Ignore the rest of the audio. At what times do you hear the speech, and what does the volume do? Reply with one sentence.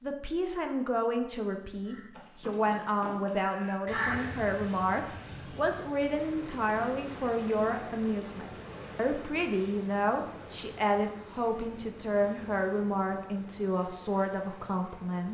The speech can be heard from 0.0 to 15.3 s, at a steady volume.